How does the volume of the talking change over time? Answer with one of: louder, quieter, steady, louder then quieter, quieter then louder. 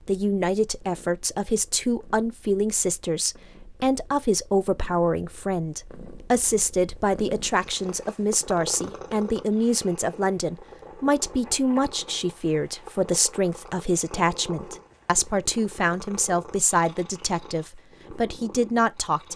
steady.